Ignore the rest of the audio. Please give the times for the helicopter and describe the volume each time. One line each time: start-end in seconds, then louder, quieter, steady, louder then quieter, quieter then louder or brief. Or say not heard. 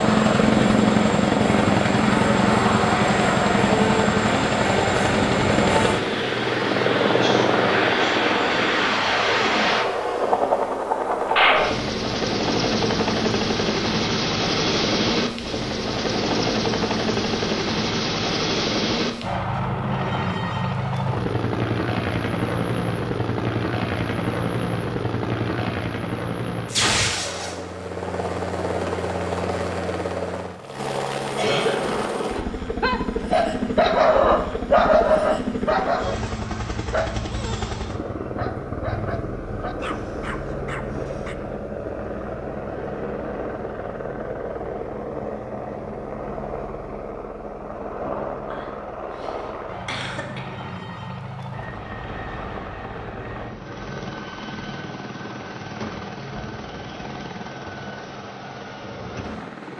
0.0-59.7 quieter.